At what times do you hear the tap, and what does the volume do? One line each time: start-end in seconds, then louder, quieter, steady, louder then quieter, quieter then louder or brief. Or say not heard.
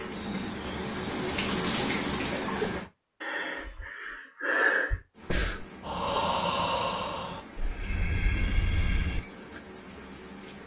0.0-2.9 brief
5.1-10.6 steady.